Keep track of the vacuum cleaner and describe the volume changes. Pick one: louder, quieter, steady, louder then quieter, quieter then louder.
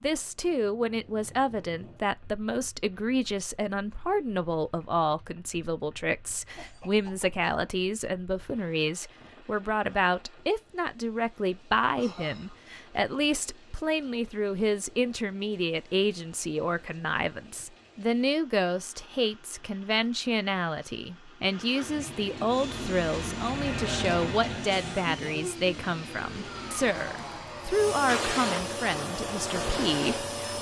louder.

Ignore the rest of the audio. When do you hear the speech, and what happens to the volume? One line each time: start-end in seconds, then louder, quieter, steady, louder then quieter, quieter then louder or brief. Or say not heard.
0.0-30.5 steady.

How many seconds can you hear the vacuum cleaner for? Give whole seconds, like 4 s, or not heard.
8 s.